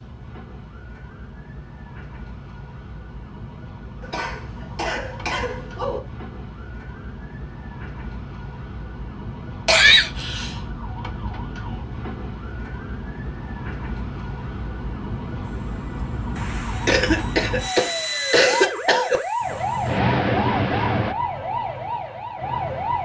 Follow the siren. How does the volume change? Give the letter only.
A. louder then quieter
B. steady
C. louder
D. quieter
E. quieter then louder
C.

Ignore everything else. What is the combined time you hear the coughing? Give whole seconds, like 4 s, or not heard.
5 s.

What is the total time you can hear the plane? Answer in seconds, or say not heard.
6 s.